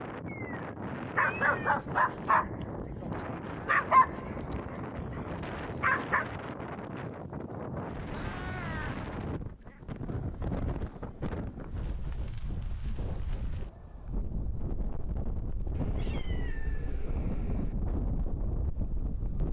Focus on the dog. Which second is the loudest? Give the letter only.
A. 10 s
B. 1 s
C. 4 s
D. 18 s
C.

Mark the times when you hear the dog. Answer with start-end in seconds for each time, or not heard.
1.1-6.2.